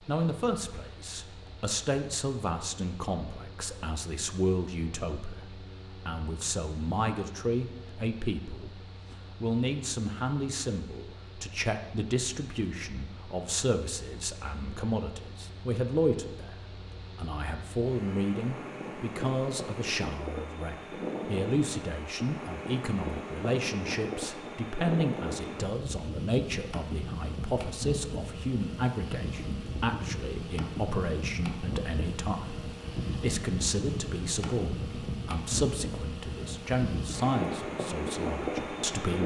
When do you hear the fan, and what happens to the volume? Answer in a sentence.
You can hear the fan from 0.0 to 39.2 s, getting louder.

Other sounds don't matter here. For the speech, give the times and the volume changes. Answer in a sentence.
You can hear the speech from 0.1 to 39.2 s, at a steady volume.